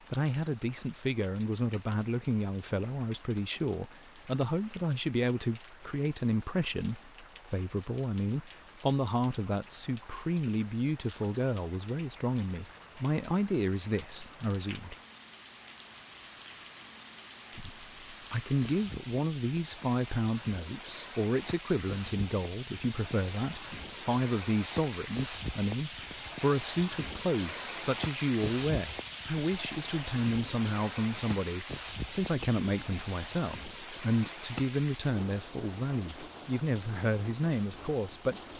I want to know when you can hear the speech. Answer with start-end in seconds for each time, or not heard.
0.1-14.9, 17.6-38.4.